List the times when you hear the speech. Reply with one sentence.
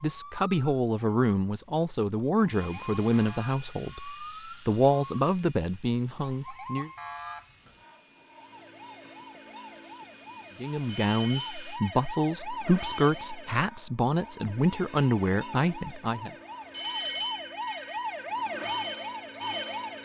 You can hear the speech from 0.0 to 6.9 s and from 10.6 to 16.3 s.